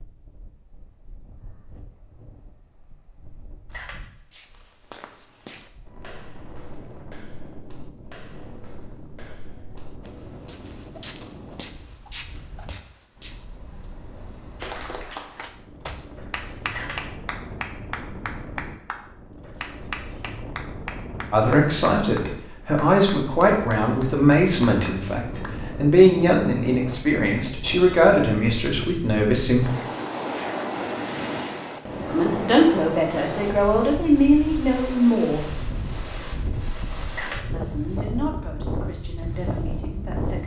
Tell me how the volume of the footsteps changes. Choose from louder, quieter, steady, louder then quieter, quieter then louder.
quieter then louder.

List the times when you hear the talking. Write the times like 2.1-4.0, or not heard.
21.3-29.7, 32.0-35.4, 37.5-40.4.